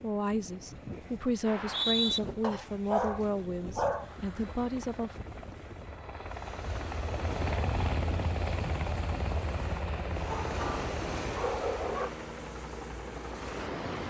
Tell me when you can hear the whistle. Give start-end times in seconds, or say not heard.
1.4-2.2.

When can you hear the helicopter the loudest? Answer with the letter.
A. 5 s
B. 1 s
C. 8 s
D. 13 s
C.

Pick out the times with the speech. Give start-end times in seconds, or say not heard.
0.0-5.2.